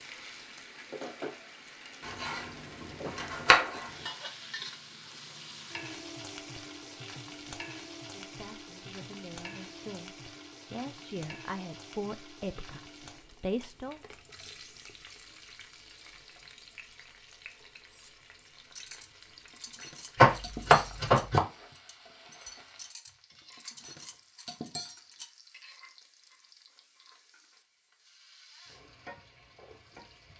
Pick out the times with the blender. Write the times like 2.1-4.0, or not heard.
not heard.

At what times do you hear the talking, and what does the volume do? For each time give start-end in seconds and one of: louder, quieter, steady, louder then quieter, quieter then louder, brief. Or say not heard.
8.1-14.0 louder.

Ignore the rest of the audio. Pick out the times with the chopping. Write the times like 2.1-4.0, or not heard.
2.0-3.8, 20.1-21.4.